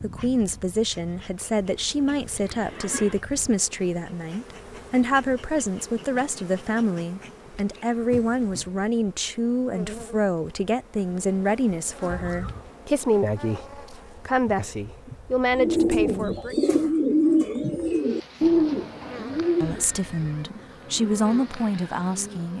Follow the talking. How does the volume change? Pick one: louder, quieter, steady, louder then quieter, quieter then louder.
steady.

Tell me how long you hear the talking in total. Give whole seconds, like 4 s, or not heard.
20 s.